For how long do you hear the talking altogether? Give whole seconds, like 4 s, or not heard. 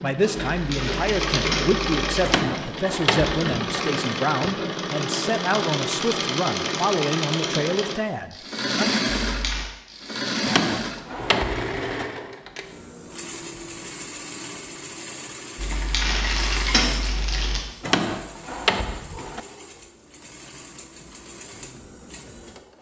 9 s.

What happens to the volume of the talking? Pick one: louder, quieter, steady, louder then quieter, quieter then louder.
steady.